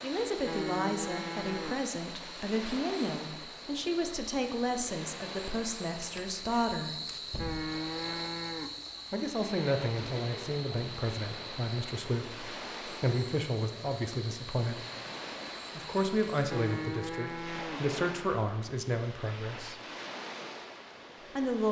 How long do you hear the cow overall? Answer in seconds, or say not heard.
4 s.